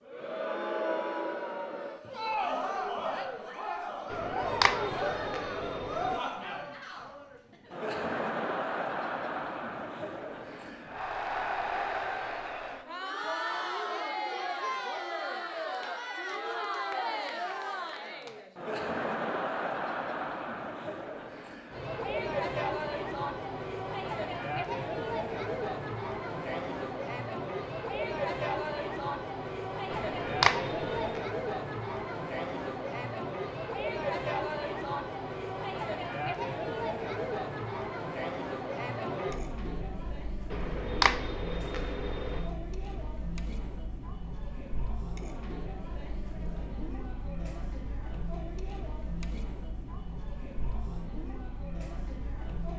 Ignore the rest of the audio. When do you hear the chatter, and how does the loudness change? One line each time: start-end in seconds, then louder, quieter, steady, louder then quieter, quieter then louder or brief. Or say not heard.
0.0-52.7 quieter.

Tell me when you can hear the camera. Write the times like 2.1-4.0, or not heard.
4.1-6.2, 29.9-31.2, 40.5-42.5.